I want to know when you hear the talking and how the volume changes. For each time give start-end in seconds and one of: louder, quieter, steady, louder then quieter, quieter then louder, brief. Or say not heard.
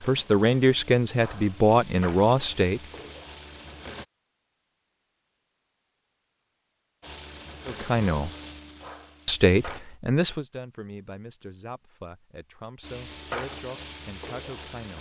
0.0-2.8 brief
7.7-8.3 brief
9.2-14.9 quieter.